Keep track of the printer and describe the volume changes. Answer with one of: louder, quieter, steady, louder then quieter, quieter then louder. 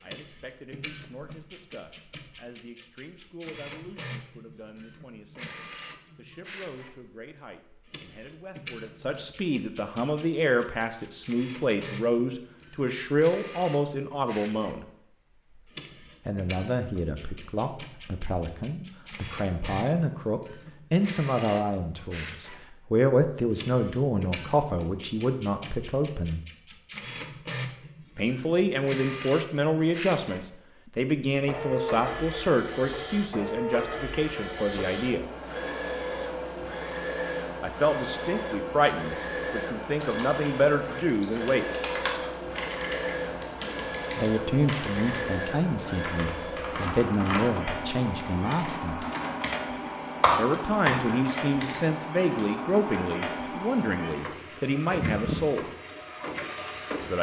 louder.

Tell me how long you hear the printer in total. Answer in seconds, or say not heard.
57 s.